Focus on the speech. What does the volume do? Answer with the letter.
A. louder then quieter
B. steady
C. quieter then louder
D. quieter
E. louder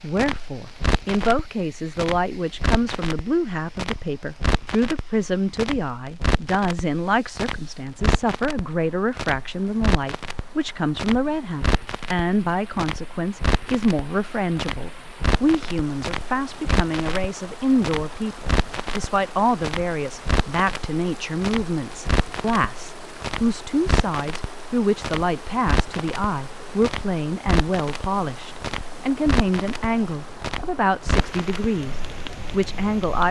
B.